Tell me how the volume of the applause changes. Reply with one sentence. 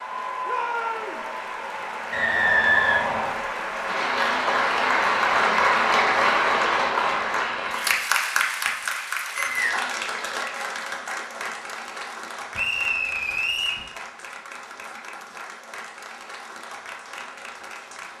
The loudness of the applause goes up, then down.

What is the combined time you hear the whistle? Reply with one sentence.
The whistle can be heard for 3 seconds in total.